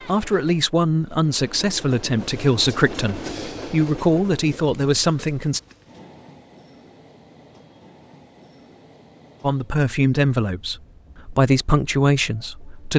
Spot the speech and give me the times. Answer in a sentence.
The speech can be heard from 0.1 to 5.6 s and from 9.4 to 12.9 s.